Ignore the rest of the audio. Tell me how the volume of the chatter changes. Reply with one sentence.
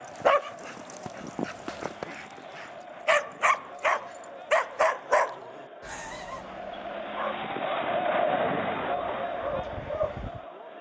The loudness of the chatter goes up.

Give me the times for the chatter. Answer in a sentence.
You can hear the chatter from 0.0 to 10.7 s.